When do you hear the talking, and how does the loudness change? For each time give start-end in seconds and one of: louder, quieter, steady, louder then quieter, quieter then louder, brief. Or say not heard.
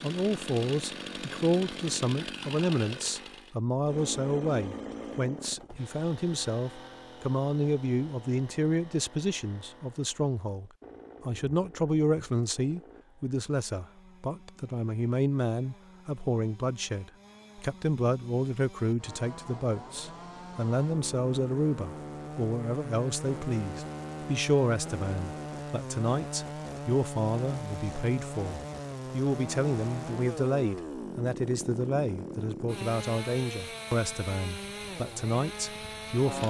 0.0-36.4 steady.